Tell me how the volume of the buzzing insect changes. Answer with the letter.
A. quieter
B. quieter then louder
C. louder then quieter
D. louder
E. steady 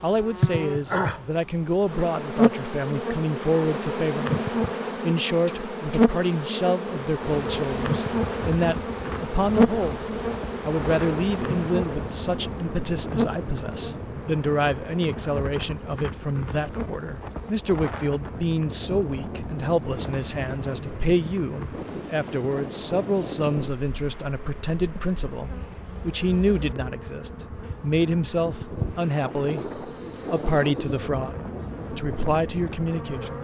A.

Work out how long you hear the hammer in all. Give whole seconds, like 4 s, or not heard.
not heard.